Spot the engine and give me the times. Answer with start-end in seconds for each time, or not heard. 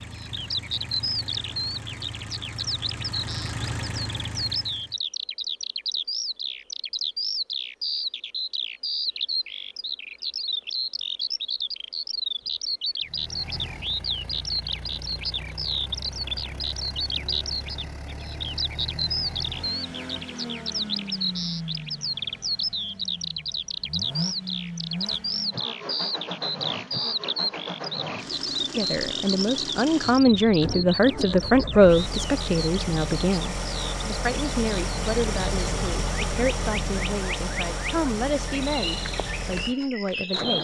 0.0-5.0, 13.0-40.5.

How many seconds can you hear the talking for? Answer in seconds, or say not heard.
12 s.